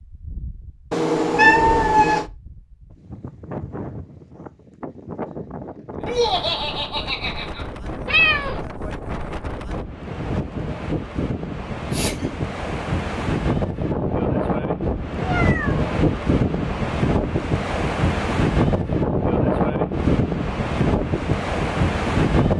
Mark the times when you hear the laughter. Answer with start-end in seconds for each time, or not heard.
6.0-7.7, 11.8-12.3.